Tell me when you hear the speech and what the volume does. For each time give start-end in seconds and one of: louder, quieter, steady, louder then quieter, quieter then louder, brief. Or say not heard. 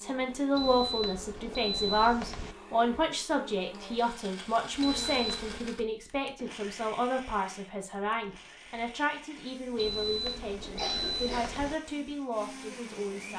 0.0-13.3 quieter.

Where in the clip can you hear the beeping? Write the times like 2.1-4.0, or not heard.
0.6-2.5, 4.8-5.7, 9.8-11.8.